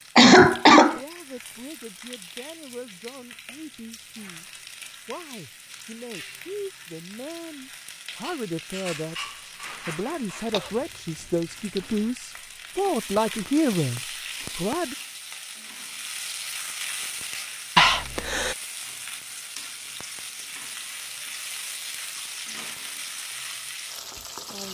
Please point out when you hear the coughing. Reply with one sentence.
You can hear the coughing from 0.1 to 1.0 s, from 10.5 to 12.1 s and from 17.8 to 18.6 s.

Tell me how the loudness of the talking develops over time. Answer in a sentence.
The volume of the talking goes up.